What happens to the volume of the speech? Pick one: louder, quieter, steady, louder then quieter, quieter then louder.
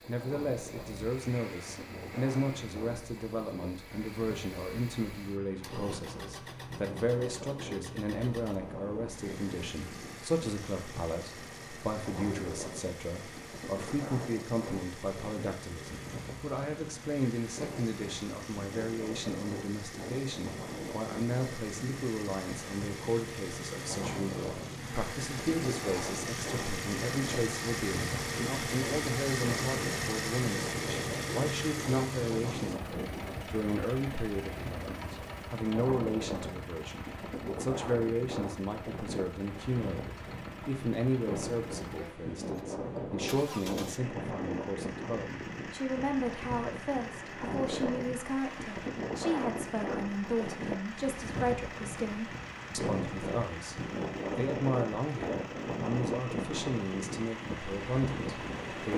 steady.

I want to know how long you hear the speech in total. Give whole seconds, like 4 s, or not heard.
59 s.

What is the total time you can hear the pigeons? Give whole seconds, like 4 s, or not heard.
not heard.